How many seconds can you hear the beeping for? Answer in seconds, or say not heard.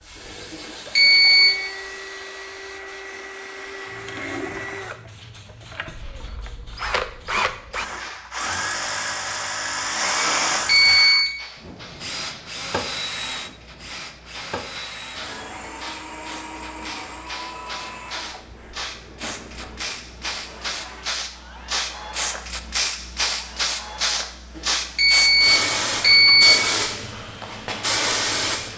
4 s.